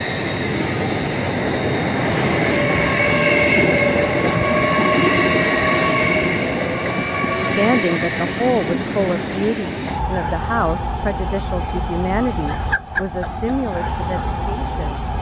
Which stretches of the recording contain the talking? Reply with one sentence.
The talking can be heard from 7.4 to 15.0 s.